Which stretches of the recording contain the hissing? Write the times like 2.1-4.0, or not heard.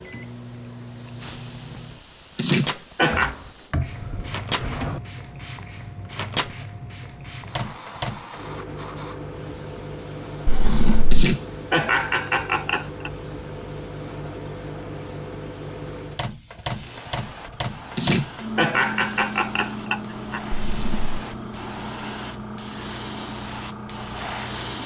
0.0-24.8.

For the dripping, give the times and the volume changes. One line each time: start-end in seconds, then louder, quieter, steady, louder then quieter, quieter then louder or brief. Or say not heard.
not heard.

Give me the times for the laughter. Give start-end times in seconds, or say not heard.
2.4-3.4, 11.1-13.1, 17.9-20.4.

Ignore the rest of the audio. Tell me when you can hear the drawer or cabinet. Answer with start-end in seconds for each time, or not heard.
3.0-5.0, 10.4-11.2, 20.6-21.1.